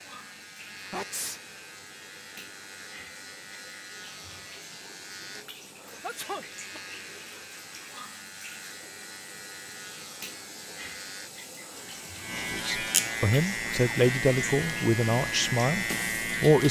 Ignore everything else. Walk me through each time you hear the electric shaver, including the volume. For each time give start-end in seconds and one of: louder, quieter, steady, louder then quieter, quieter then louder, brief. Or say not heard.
0.0-16.6 louder.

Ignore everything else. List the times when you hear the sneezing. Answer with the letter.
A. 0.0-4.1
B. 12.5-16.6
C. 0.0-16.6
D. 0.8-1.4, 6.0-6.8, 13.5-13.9
D.